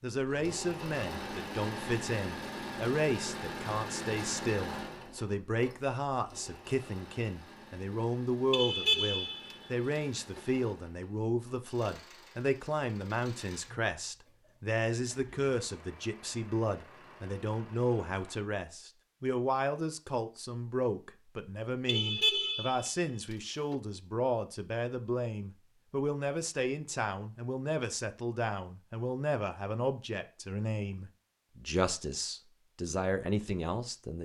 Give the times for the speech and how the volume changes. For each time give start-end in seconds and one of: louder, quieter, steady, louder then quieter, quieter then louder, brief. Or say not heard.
0.0-34.2 steady.